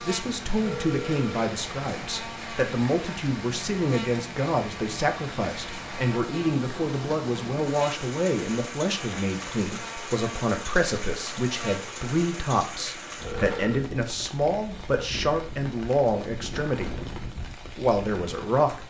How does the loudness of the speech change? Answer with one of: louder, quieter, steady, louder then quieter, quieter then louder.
steady.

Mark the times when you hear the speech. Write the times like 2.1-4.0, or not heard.
0.1-18.8.